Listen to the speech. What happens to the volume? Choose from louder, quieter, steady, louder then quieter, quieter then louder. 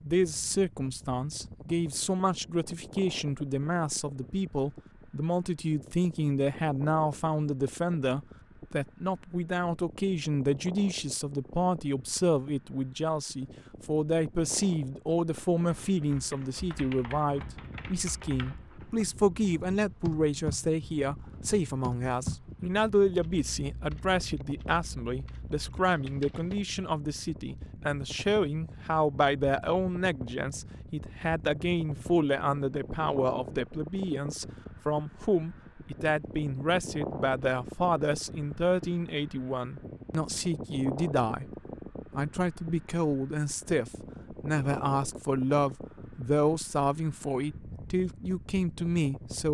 steady.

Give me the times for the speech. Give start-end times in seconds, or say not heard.
0.0-41.5, 42.1-49.4.